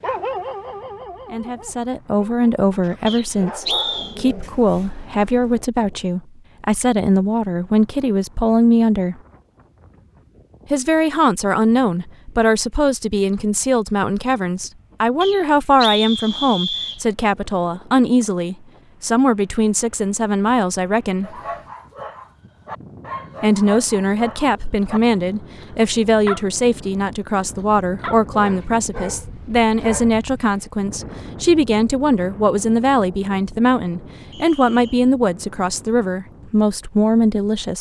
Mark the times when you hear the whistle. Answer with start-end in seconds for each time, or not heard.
3.0-4.2, 15.2-17.0, 34.3-35.1.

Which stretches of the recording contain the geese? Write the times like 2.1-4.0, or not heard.
not heard.